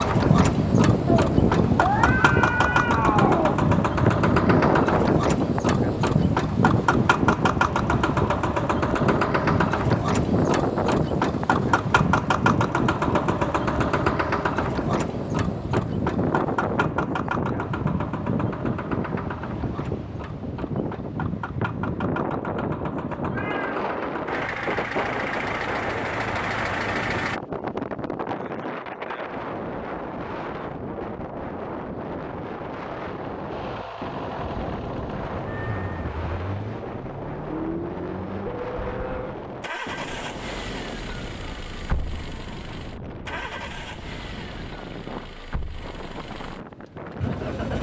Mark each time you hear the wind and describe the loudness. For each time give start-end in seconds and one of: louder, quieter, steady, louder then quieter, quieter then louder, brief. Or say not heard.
0.0-47.7 quieter.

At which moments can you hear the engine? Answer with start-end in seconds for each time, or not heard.
0.0-27.4, 33.0-47.7.